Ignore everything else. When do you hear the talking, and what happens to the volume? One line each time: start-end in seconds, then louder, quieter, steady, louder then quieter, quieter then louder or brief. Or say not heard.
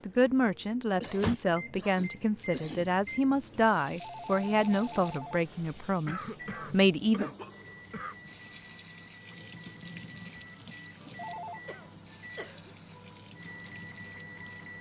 0.1-7.2 steady.